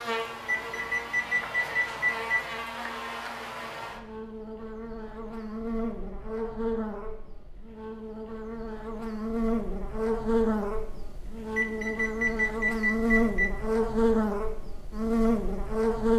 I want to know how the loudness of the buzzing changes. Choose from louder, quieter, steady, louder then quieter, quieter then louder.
louder.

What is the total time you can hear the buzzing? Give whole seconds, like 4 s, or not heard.
16 s.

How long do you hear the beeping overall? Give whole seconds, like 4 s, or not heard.
4 s.